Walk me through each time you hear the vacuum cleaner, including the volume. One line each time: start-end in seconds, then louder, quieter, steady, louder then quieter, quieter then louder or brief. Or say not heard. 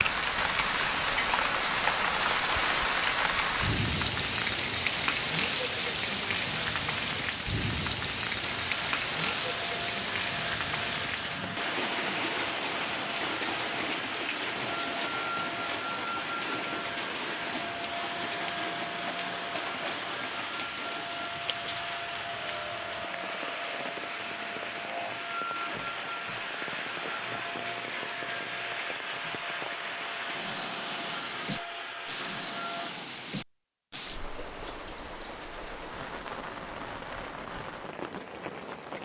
8.4-32.9 steady.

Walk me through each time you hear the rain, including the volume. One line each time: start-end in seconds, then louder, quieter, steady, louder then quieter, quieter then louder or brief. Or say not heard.
0.0-38.9 quieter.